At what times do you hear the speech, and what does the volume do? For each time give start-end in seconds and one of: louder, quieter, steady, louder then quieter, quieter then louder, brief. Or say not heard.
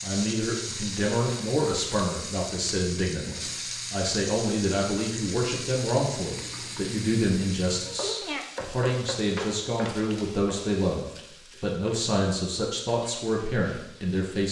0.0-14.4 steady.